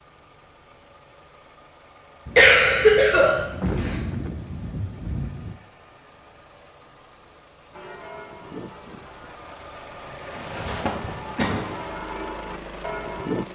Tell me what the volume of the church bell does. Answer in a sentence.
The loudness of the church bell goes down, then up.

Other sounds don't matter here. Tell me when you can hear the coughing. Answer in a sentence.
The coughing can be heard from 2.4 to 4.0 s and from 10.3 to 11.6 s.